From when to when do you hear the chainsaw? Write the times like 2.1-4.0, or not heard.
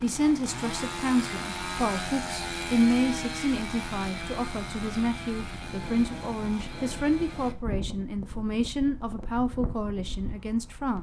0.0-7.5.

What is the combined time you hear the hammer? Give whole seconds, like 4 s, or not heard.
not heard.